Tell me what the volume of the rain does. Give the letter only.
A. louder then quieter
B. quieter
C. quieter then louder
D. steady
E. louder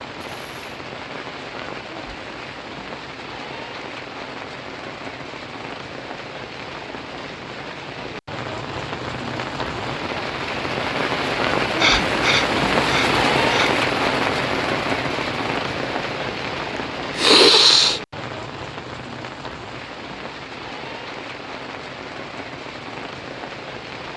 A.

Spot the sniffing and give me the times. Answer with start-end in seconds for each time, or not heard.
0.2-0.8, 11.8-13.7, 16.8-18.0.